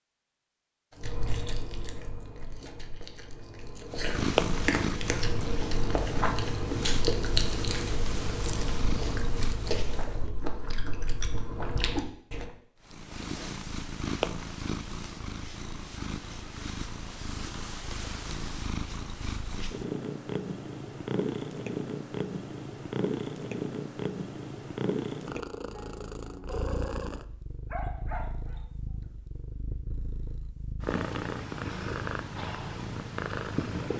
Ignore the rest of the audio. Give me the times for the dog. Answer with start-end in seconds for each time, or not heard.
27.7-28.6.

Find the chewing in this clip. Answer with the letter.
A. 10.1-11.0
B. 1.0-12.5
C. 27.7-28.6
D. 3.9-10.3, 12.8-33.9
B.